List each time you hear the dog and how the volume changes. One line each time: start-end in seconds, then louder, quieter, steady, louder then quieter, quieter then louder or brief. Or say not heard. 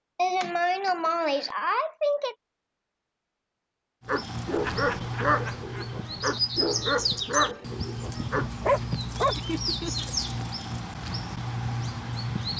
4.0-9.3 quieter then louder.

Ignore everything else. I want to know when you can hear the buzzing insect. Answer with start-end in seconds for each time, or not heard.
not heard.